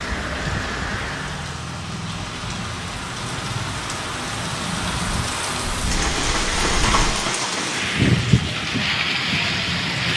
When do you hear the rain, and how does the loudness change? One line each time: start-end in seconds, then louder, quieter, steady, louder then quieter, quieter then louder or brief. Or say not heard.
0.0-10.1 louder.